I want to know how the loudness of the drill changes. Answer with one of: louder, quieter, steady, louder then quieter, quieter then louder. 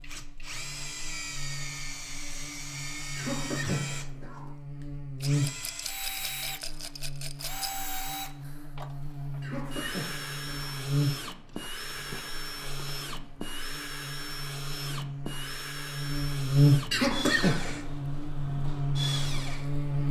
steady.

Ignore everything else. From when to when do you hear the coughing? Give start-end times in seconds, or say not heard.
3.1-4.5, 9.4-10.8, 16.9-17.9.